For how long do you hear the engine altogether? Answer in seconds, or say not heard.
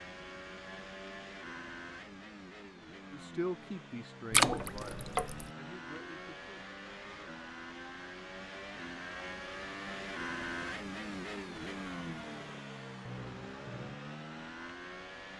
15 s.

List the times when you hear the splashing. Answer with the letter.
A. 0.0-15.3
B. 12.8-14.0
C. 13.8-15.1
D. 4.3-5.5
D.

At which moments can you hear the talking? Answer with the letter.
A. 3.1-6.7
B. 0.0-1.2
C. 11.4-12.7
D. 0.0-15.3
A.